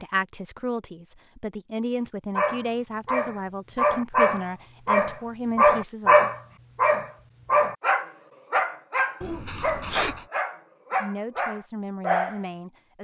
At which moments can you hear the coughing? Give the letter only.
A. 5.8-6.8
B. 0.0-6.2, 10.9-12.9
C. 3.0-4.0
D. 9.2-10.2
D.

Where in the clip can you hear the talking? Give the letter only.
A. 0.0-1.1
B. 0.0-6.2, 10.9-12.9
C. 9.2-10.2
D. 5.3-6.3
B.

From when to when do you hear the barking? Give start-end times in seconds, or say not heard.
2.4-12.4.